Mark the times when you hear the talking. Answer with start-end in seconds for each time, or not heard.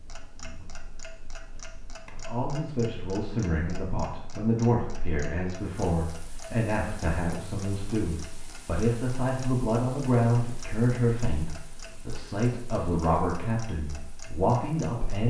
2.1-15.2.